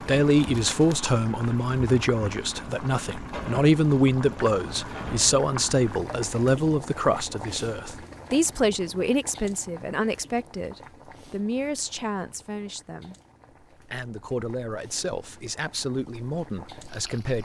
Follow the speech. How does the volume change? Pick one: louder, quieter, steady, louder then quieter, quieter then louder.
quieter.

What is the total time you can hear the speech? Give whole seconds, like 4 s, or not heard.
17 s.